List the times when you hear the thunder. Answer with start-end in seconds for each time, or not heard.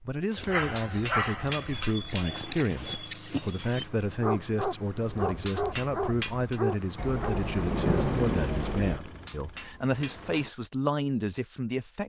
7.0-9.0.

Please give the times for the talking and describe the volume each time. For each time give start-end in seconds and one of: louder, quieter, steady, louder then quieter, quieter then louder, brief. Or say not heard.
0.0-12.0 steady.